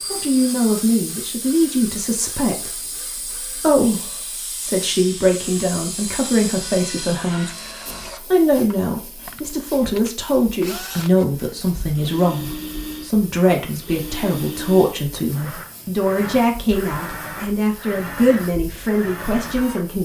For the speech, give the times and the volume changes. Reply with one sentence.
The speech can be heard from 0.1 to 20.0 s, at a steady volume.